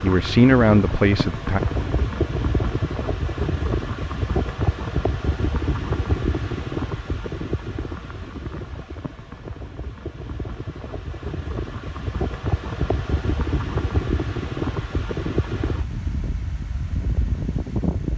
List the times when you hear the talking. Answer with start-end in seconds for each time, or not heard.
0.0-1.6.